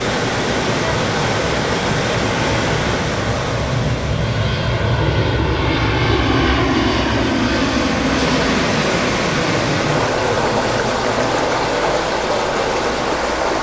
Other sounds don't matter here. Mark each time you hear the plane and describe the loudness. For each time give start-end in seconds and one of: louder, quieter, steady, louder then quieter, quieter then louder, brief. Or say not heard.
0.1-13.5 louder then quieter.